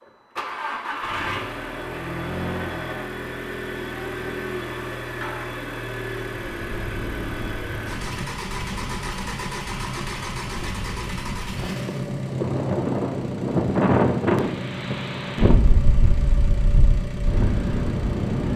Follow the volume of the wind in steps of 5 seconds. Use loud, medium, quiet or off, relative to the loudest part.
off, quiet, loud, loud.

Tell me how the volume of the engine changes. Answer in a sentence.
The volume of the engine stays about the same.